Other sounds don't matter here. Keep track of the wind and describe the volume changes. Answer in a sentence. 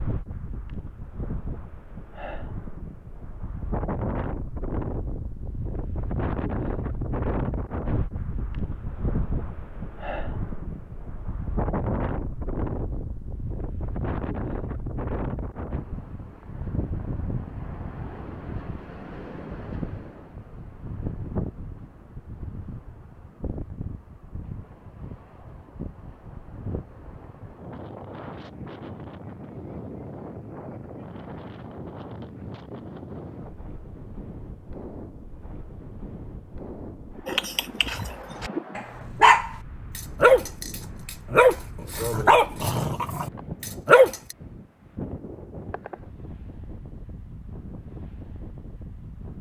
The loudness of the wind goes down.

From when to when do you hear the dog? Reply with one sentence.
The dog can be heard from 37.2 to 44.4 s.